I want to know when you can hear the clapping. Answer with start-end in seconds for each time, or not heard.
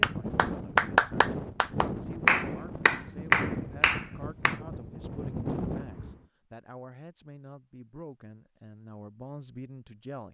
0.0-4.5.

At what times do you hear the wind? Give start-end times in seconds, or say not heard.
0.0-6.2.